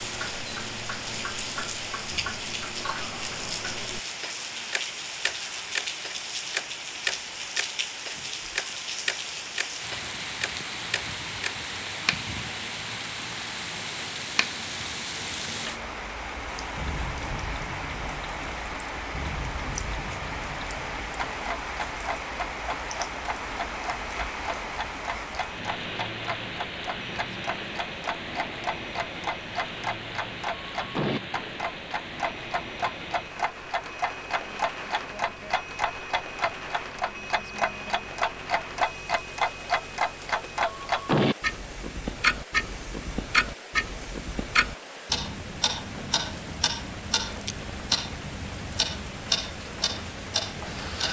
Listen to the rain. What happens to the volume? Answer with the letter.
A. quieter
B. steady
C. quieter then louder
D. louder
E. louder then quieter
A.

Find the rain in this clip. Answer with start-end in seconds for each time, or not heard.
0.0-51.0.